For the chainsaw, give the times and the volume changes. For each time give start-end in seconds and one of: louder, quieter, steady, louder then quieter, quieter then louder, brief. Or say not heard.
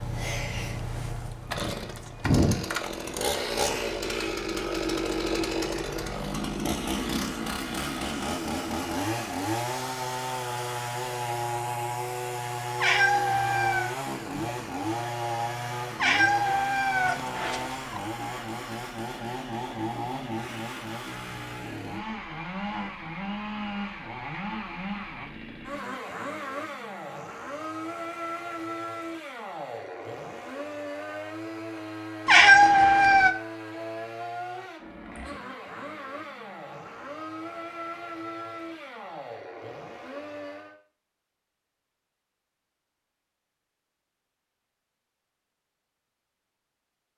0.0-40.8 quieter.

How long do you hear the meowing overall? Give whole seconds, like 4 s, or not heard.
4 s.